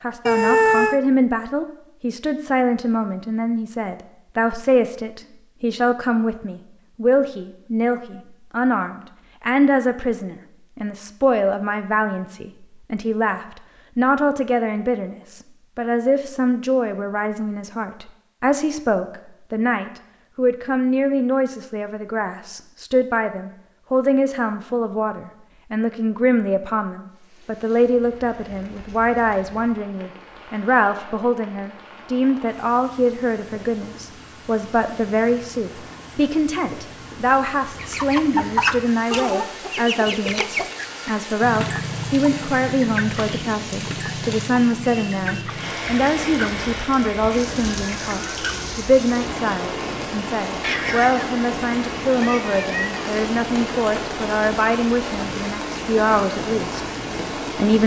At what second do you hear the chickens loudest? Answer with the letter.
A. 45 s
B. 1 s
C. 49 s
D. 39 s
D.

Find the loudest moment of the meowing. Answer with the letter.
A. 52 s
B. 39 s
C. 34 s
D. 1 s
D.